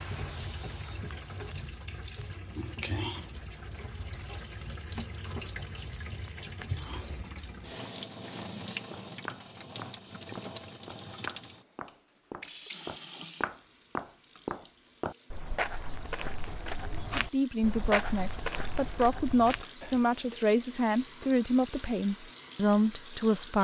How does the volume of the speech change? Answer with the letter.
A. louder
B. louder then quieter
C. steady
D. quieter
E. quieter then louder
C.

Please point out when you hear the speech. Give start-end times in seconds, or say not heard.
17.1-23.6.